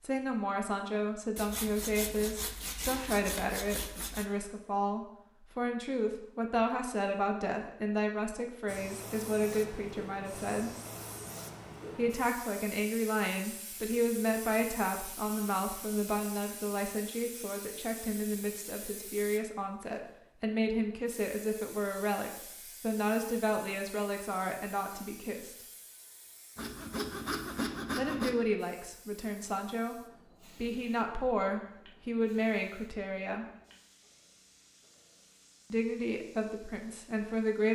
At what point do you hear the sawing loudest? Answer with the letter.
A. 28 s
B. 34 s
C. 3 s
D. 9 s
A.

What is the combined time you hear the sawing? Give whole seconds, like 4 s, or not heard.
5 s.